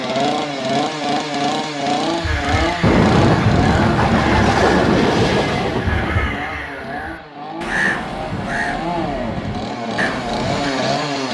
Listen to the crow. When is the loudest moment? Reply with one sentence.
The loudest moment of the crow is at 8 seconds.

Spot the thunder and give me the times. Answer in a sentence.
You can hear the thunder from 2.8 to 6.5 s.